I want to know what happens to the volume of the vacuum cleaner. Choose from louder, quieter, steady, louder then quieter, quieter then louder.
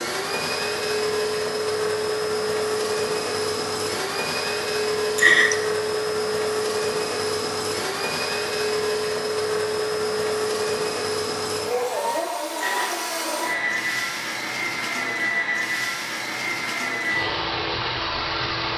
steady.